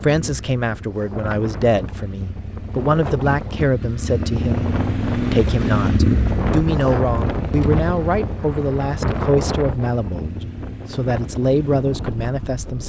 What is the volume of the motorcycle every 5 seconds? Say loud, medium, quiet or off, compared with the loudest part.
medium, loud, quiet.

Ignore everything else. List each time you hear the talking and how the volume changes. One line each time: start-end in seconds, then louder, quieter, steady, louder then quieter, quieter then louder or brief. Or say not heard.
0.0-12.8 steady.